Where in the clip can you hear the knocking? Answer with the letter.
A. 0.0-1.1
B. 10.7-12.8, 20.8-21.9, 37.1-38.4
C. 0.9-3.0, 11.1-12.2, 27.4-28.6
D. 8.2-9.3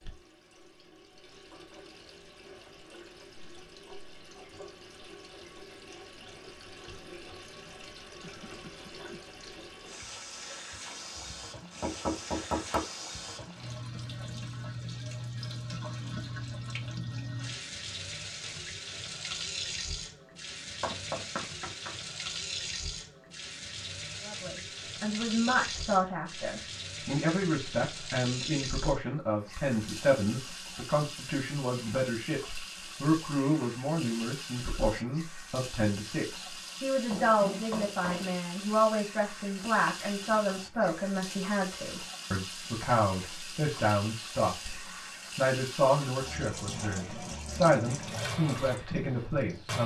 B.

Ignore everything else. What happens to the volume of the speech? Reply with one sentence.
The loudness of the speech stays about the same.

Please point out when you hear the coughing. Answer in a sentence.
The coughing can be heard from 8.2 to 9.3 s.